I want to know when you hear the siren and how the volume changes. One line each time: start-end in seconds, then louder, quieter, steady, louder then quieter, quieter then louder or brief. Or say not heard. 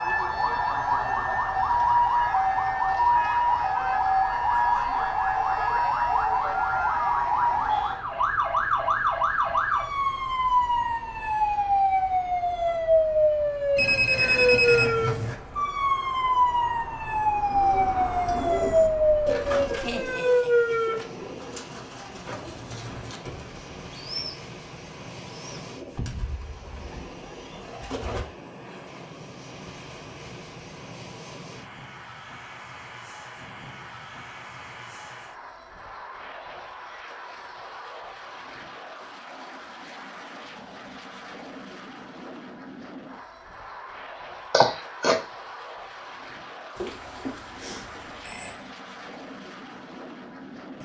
0.0-21.3 steady.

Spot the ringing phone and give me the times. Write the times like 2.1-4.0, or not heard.
13.8-15.3, 46.8-48.5.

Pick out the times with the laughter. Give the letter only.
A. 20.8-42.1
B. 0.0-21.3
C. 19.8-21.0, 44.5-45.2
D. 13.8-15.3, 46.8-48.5
C.